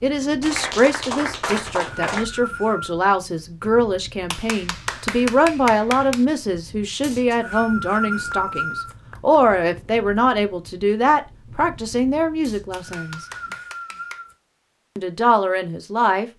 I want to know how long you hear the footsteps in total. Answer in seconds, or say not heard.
not heard.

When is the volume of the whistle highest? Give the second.
8 s.